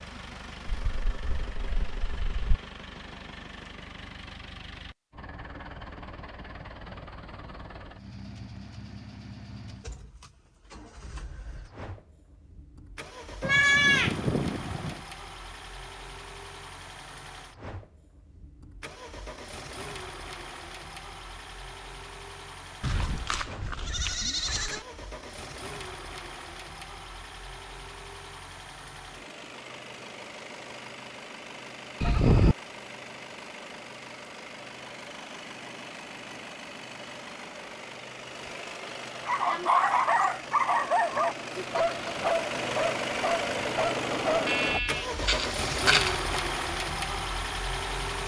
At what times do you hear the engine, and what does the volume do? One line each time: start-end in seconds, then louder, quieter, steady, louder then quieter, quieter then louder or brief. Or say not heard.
0.0-48.2 louder.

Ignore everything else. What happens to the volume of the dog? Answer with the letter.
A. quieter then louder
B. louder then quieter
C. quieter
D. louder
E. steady
C.